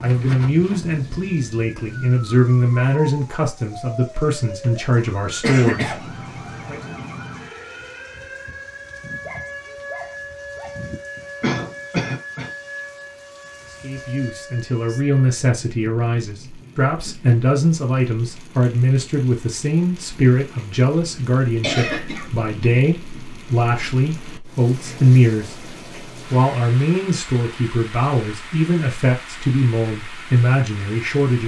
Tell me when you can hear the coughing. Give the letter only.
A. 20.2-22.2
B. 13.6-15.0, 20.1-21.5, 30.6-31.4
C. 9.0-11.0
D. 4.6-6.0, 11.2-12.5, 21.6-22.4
D.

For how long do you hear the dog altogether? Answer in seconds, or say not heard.
2 s.